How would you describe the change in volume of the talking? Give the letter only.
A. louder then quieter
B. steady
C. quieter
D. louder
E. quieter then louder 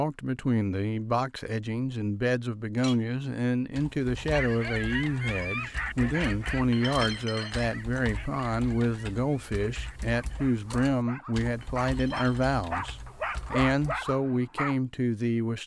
B.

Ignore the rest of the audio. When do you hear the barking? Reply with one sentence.
The barking can be heard from 4.3 to 14.8 s.